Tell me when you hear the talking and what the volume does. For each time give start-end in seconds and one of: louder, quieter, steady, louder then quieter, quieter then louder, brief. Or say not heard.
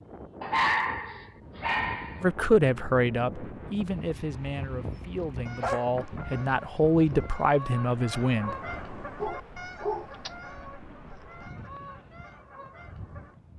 2.2-8.6 quieter then louder.